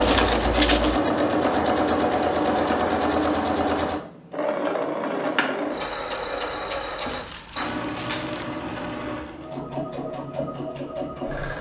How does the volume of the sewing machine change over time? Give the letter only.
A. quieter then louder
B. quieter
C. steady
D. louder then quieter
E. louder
B.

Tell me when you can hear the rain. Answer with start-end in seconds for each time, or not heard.
not heard.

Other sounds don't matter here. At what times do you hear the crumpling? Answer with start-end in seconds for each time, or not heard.
0.0-1.0, 7.0-8.4.